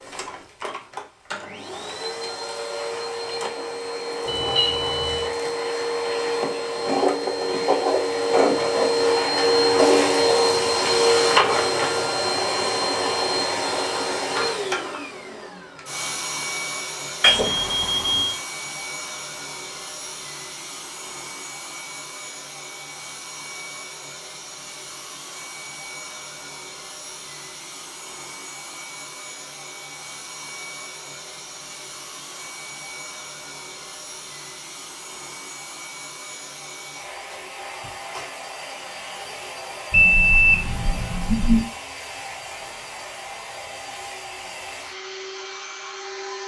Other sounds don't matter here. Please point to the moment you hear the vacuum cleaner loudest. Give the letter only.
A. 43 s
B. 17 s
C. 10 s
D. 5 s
C.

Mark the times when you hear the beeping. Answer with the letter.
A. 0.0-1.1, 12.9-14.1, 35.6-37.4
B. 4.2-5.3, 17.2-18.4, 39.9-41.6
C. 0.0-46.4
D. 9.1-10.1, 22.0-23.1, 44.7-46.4
B.